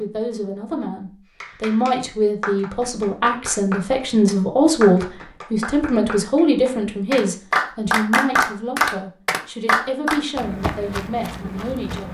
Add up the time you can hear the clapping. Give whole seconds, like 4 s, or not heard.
9 s.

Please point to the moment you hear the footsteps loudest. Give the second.
11 s.